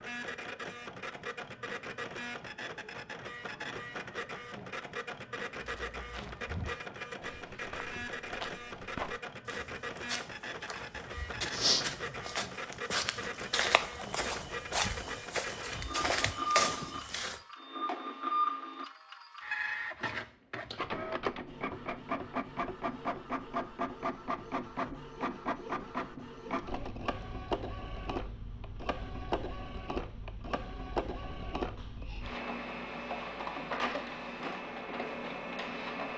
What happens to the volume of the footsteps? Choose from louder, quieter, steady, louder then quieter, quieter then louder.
louder.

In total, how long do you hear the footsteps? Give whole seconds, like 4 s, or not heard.
12 s.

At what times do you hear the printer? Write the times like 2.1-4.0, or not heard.
0.0-36.1.